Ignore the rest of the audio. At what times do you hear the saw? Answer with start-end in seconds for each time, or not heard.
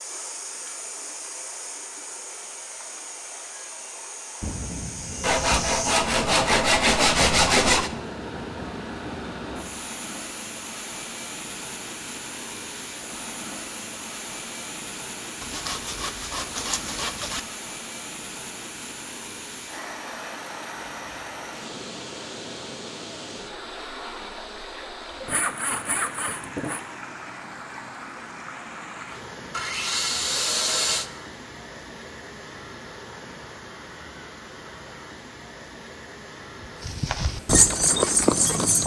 5.2-7.9, 15.4-17.4, 25.2-26.8, 29.5-31.1.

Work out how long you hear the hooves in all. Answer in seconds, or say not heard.
2 s.